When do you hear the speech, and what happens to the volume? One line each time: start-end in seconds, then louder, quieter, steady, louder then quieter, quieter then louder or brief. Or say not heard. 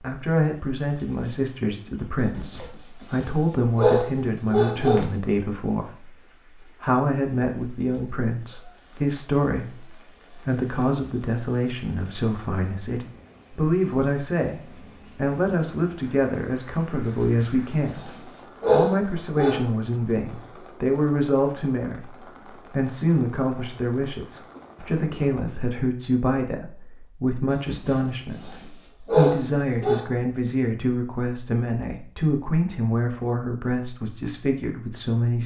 0.0-35.4 steady.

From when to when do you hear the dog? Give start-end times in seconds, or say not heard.
2.2-5.0, 17.1-19.6, 27.5-30.1.